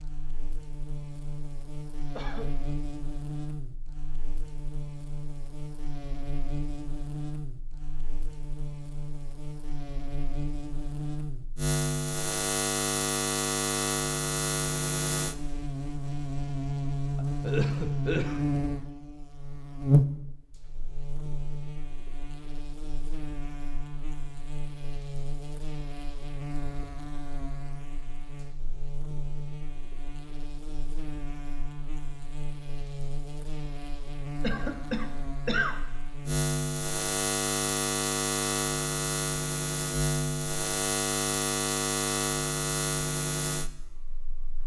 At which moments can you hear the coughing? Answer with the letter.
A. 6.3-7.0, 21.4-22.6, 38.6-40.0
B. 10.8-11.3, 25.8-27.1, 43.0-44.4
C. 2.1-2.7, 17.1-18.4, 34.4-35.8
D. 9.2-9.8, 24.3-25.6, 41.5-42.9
C.